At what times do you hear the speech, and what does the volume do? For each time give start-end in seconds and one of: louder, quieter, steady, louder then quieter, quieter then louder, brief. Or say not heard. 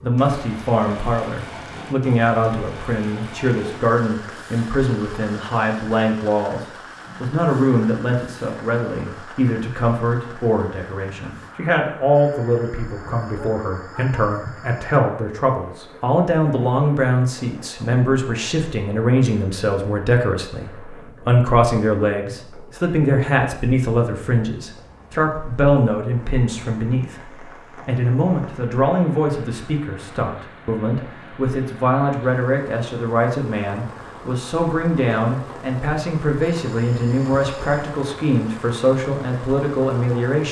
0.0-40.4 steady.